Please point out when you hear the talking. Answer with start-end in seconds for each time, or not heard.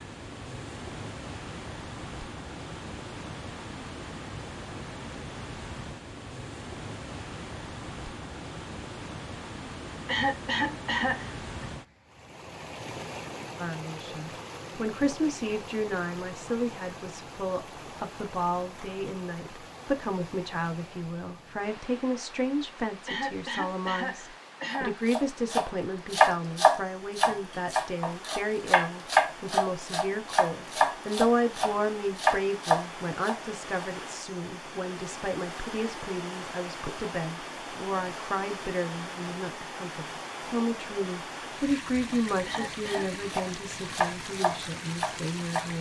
13.6-45.7.